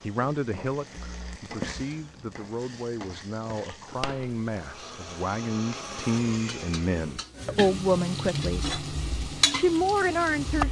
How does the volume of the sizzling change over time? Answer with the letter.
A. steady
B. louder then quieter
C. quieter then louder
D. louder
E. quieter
C.